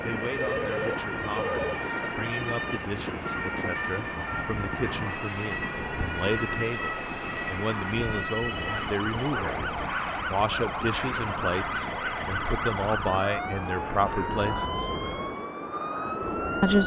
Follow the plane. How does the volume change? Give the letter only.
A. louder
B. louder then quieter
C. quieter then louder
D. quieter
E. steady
E.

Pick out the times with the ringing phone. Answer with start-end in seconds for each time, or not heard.
0.3-1.8, 8.2-9.2, 11.6-12.7.